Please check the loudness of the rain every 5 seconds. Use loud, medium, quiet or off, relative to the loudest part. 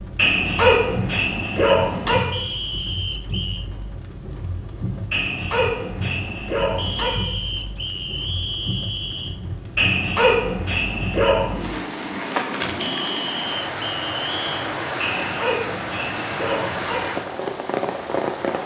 medium, medium, loud, loud.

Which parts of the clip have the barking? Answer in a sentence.
The barking can be heard from 0.1 to 2.2 s, from 5.1 to 7.1 s, from 9.8 to 11.7 s and from 15.0 to 17.0 s.